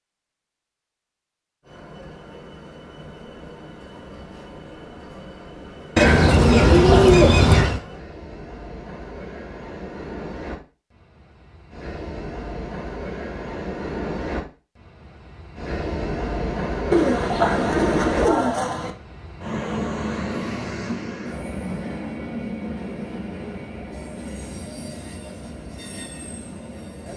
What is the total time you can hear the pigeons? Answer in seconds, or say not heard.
4 s.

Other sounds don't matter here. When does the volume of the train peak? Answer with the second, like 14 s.
18 s.